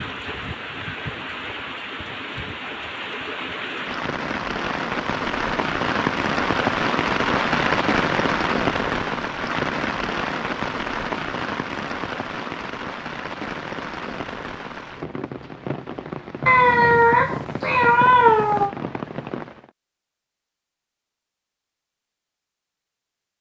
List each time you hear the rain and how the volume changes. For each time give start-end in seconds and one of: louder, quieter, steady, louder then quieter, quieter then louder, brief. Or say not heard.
0.0-19.7 louder then quieter.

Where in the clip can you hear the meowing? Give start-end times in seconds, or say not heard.
16.4-18.8.